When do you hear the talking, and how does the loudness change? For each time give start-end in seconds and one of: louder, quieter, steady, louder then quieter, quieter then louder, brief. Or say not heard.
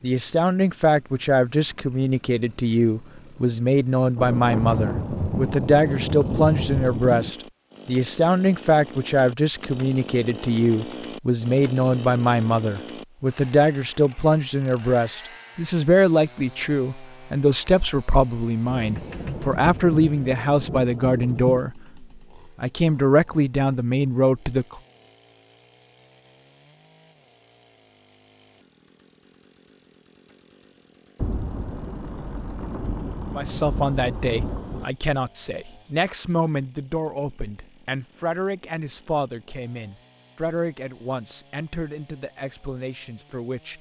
0.0-24.8 steady
33.3-43.7 quieter.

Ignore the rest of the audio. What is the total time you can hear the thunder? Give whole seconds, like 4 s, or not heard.
10 s.